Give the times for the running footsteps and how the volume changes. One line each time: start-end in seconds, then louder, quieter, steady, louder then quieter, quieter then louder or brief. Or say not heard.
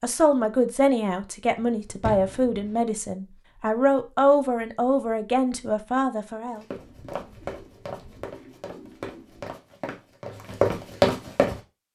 6.5-11.6 louder.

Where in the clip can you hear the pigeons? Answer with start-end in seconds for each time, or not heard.
6.8-9.6.